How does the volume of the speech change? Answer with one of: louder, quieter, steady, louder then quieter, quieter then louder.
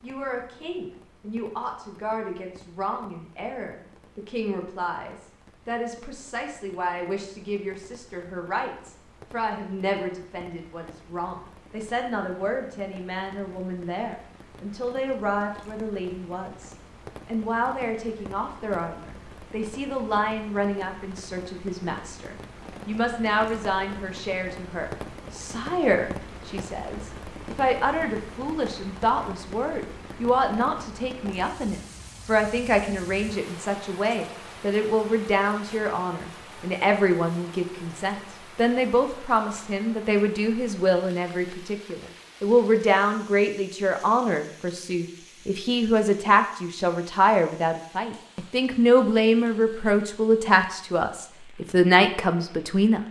louder.